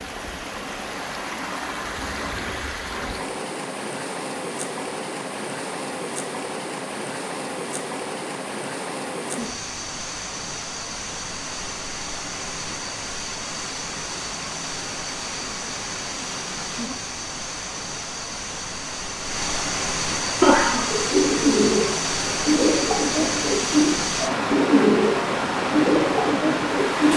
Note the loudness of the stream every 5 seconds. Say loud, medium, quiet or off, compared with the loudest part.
medium, medium, medium, medium, loud, loud.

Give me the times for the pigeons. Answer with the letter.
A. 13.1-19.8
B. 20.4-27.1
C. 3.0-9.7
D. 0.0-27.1
B.